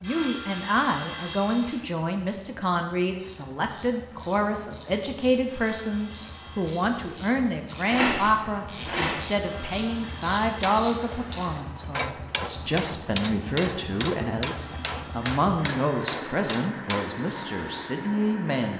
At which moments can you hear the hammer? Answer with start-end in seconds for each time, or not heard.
10.4-17.9.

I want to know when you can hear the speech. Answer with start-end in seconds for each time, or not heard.
0.0-18.7.